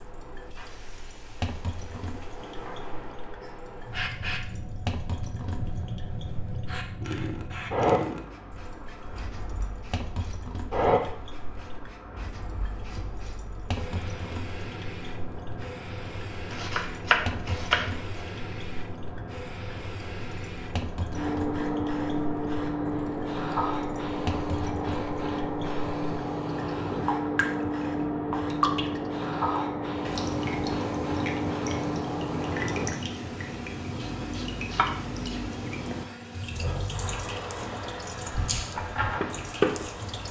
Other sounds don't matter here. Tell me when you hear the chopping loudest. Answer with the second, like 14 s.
17 s.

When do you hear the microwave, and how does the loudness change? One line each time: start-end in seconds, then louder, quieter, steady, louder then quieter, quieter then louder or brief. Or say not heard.
not heard.